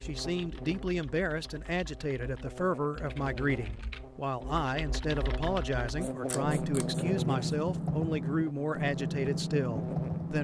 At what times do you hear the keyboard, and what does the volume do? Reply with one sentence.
You can hear the keyboard from 0.2 to 10.3 s, getting louder.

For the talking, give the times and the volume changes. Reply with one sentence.
You can hear the talking from 0.0 to 10.3 s, at a steady volume.